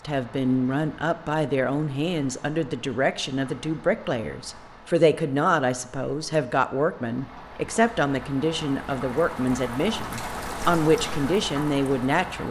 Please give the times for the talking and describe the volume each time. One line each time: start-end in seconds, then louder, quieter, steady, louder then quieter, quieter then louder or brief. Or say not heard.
0.0-12.4 steady.